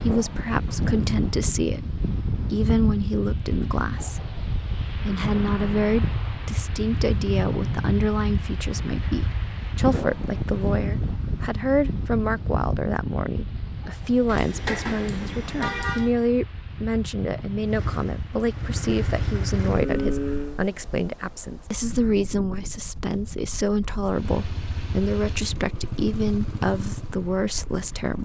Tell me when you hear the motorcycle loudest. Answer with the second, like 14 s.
20 s.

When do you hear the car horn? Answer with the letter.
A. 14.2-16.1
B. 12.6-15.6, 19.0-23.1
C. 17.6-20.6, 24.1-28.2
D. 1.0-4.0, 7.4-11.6
A.